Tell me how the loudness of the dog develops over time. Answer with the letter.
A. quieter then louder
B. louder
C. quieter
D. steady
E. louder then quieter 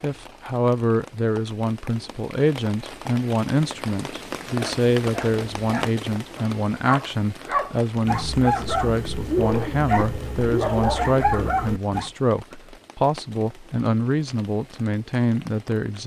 B.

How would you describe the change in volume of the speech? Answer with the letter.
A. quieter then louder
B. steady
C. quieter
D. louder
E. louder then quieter
B.